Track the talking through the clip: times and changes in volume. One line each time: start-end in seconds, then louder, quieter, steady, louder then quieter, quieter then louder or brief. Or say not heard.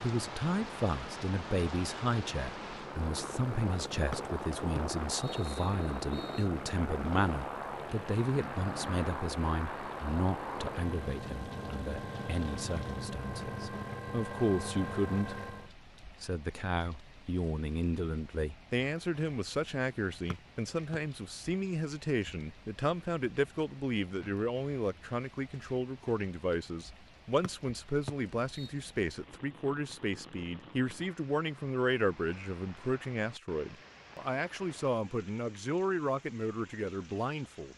0.0-37.7 steady.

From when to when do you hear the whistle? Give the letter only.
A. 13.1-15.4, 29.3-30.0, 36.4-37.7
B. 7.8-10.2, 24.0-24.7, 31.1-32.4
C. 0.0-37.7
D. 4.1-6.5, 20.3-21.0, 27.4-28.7
D.